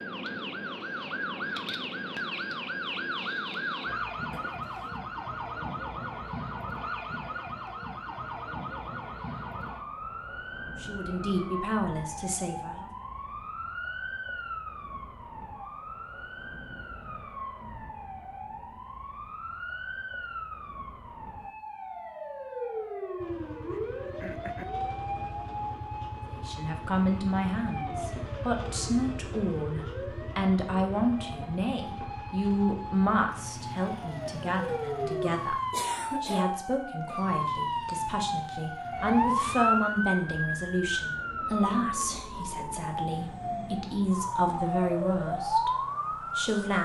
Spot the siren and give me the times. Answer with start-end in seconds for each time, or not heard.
0.0-46.8.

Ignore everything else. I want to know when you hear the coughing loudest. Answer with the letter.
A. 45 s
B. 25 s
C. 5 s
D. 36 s
D.